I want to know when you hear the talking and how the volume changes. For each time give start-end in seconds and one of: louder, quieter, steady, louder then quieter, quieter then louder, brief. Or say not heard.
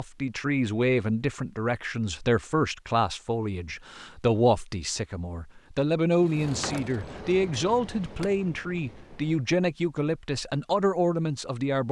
0.0-11.8 steady.